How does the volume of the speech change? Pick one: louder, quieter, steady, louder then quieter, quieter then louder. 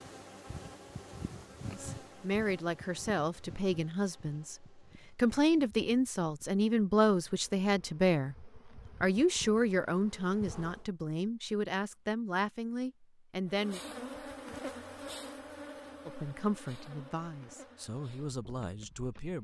louder then quieter.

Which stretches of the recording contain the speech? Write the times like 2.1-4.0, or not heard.
1.7-13.8, 16.1-19.4.